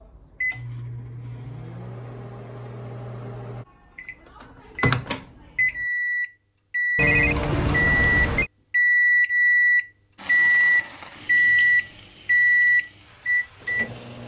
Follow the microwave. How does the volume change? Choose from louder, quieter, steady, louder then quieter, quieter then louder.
louder.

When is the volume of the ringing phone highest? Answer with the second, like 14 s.
7 s.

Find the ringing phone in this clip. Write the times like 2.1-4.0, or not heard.
7.0-8.5.